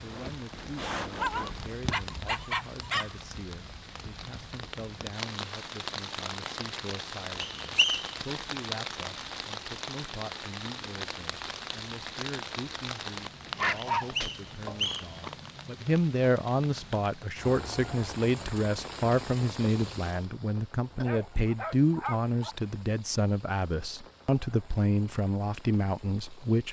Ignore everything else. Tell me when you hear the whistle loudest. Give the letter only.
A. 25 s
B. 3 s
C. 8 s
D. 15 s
C.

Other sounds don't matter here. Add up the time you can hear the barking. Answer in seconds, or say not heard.
5 s.